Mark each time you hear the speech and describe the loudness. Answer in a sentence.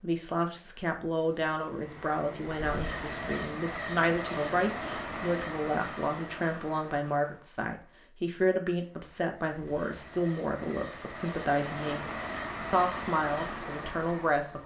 You can hear the speech from 0.0 to 12.1 s, at a steady volume; and briefly from 12.7 to 14.6 s.